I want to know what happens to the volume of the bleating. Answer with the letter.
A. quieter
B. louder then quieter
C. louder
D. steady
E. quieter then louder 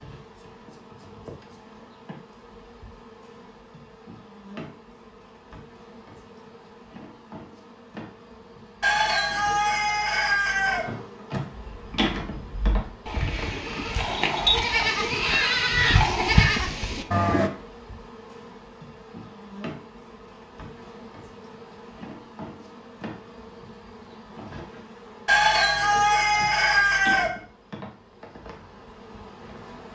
C.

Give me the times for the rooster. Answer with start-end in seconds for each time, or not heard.
8.8-10.8, 25.2-27.3.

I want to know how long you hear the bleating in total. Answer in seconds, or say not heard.
6 s.